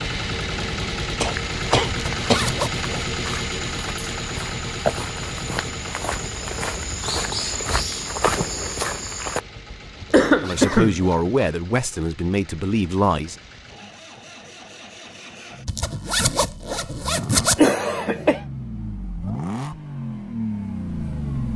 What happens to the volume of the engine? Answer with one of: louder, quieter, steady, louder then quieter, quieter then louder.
quieter then louder.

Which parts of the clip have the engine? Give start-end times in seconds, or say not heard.
0.0-21.5.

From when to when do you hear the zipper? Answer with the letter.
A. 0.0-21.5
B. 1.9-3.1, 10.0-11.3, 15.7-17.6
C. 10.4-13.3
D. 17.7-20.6
B.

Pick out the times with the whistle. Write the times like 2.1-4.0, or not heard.
not heard.